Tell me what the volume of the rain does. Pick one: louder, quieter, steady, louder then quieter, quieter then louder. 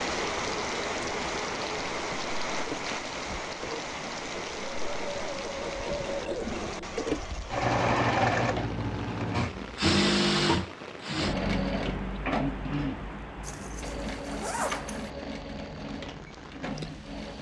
quieter.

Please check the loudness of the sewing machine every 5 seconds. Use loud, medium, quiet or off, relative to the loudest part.
medium, loud, loud, medium.